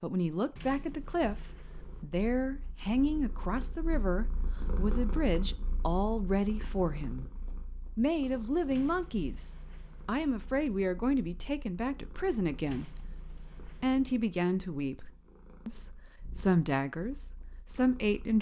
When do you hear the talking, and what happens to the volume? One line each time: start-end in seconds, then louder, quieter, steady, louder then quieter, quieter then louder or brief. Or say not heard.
0.0-18.3 steady.